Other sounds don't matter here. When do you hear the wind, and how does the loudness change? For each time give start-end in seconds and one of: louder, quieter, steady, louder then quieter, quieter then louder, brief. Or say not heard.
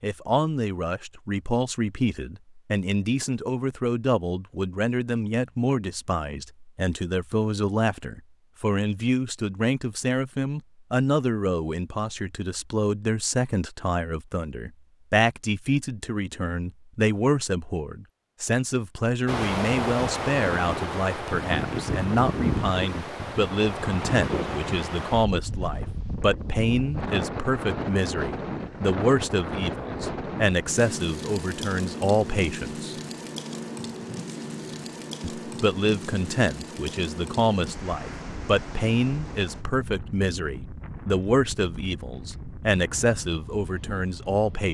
19.2-44.6 quieter.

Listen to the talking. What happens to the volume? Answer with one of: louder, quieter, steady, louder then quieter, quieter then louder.
steady.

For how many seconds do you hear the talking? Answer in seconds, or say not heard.
42 s.